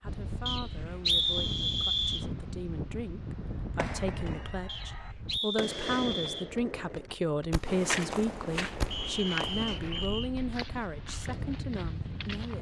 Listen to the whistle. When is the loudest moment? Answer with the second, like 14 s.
1 s.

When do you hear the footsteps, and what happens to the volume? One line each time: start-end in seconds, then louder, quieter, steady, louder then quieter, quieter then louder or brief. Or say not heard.
7.7-12.5 quieter.